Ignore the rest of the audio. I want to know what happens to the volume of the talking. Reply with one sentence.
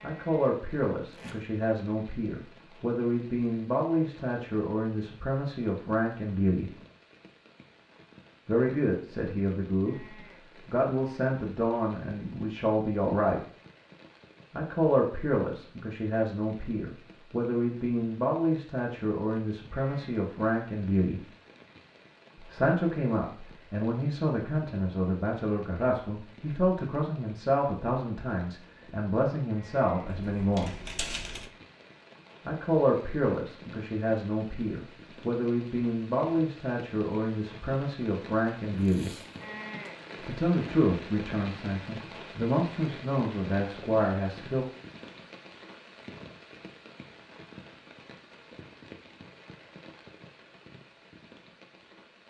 The loudness of the talking stays about the same.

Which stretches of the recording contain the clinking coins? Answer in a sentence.
The clinking coins can be heard from 30.1 to 31.5 s.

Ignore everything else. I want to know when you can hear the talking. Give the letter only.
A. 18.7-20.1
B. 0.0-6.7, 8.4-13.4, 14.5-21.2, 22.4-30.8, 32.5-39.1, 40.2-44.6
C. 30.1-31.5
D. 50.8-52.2
B.